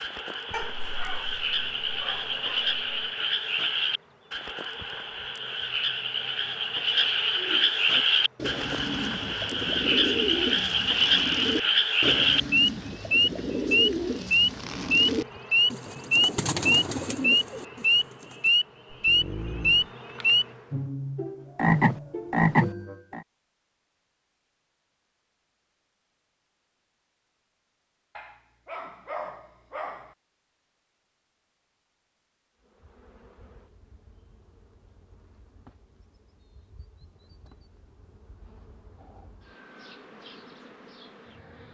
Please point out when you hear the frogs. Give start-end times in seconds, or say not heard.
0.0-23.2.